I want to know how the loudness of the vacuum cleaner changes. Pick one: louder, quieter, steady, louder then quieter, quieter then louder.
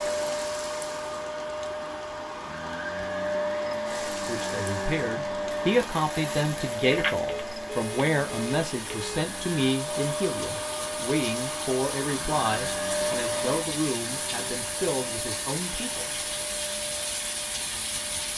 quieter.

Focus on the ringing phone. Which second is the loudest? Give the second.
7 s.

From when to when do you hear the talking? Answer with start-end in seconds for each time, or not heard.
4.0-16.1.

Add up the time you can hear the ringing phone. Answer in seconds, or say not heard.
2 s.